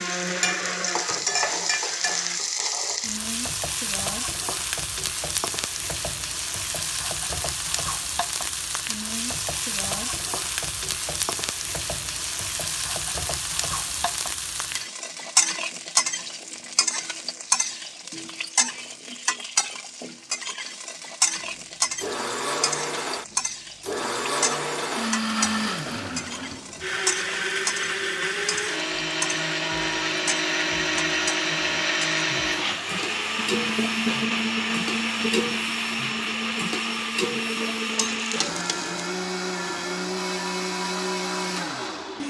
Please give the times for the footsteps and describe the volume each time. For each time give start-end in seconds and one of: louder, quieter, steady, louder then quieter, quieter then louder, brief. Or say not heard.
not heard.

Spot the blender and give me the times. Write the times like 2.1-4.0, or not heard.
0.0-2.4, 21.4-42.2.